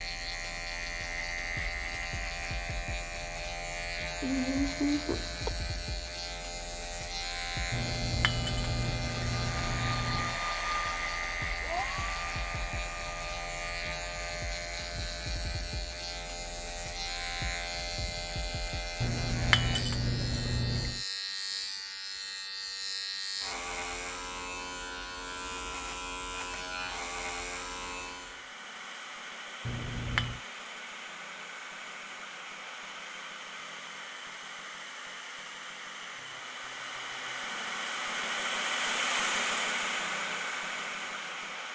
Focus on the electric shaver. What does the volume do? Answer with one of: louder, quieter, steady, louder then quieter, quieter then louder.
steady.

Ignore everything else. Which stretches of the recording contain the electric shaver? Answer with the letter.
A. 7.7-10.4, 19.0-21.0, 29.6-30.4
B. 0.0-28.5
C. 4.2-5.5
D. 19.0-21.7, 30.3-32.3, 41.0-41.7
B.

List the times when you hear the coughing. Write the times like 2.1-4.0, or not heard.
4.2-5.5.